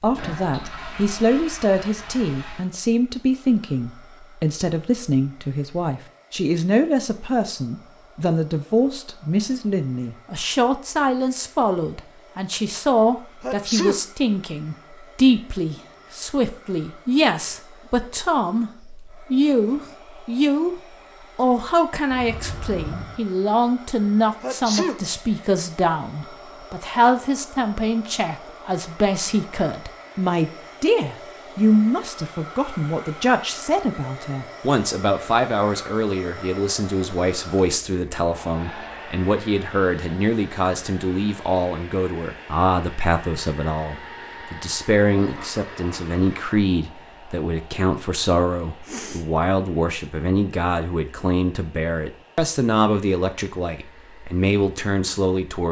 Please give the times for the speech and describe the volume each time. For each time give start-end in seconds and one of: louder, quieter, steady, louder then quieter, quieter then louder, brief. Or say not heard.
0.0-55.6 steady.